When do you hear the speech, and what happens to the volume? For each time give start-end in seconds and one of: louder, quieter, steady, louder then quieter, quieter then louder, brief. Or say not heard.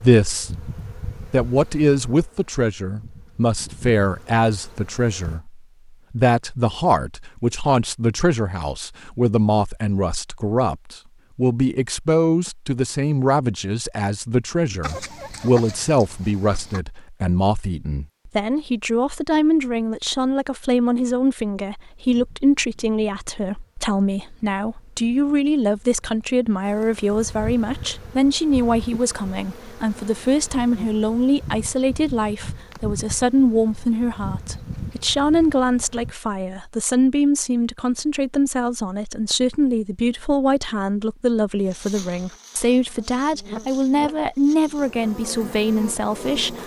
0.0-0.7 brief
1.3-46.6 steady.